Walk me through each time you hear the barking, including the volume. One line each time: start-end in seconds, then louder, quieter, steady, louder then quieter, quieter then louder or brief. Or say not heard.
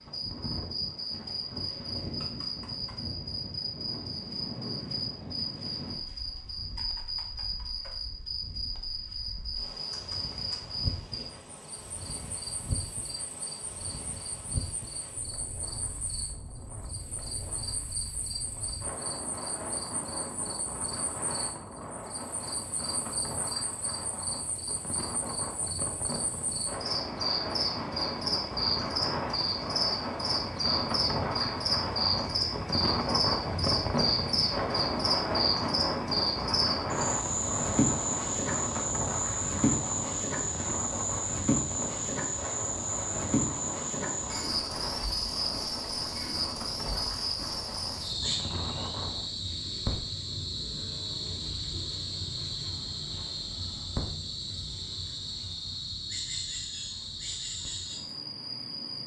not heard.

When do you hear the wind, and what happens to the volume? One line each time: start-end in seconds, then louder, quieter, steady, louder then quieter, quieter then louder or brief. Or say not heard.
0.0-49.4 louder then quieter.